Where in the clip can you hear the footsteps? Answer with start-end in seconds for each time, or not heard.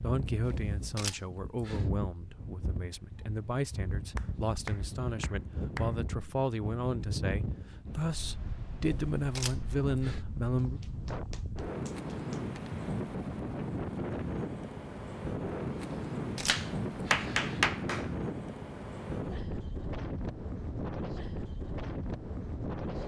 not heard.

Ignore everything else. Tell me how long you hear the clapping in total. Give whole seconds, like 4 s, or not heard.
5 s.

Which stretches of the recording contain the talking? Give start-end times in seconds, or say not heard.
0.0-10.8.